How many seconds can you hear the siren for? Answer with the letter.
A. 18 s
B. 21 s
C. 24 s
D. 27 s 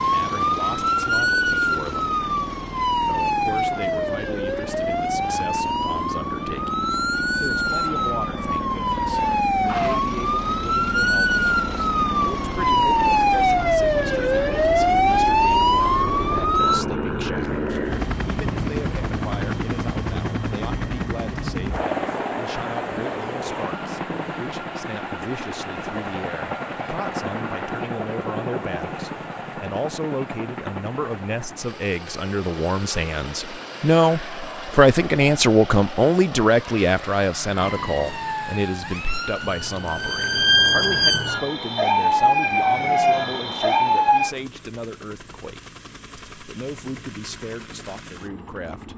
C.